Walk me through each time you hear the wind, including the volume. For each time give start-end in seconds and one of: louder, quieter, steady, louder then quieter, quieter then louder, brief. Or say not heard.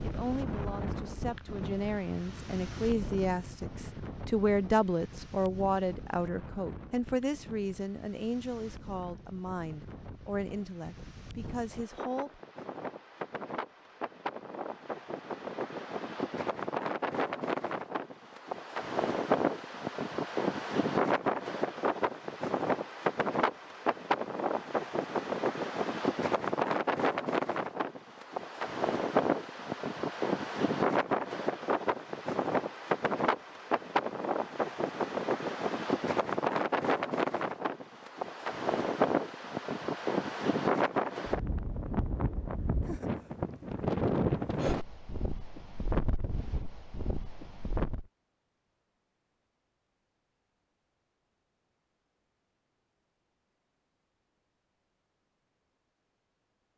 0.0-48.0 louder.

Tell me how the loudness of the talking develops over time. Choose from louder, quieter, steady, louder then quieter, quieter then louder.
louder then quieter.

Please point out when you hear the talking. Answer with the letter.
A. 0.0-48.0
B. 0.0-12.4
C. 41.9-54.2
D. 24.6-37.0
B.